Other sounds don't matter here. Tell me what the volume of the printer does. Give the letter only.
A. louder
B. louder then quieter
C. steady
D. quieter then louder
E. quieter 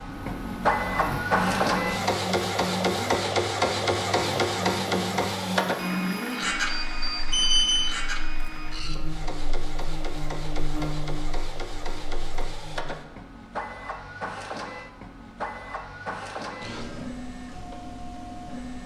E.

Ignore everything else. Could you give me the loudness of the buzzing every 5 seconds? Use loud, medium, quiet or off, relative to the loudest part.
loud, loud, loud, off.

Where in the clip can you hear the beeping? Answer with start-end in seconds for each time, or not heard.
6.8-7.9.